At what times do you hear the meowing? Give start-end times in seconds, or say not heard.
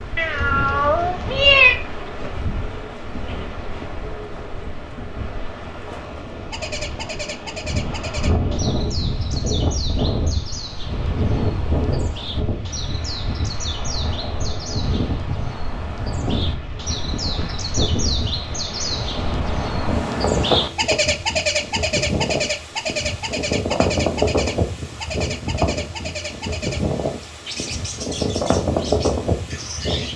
0.1-1.8.